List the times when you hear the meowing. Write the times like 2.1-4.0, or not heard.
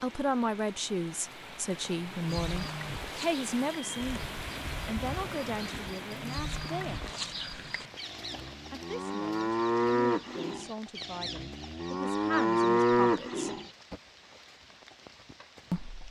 not heard.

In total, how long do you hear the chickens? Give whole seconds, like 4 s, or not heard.
not heard.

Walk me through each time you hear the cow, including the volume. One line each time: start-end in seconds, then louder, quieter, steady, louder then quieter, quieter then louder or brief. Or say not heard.
2.2-13.9 louder.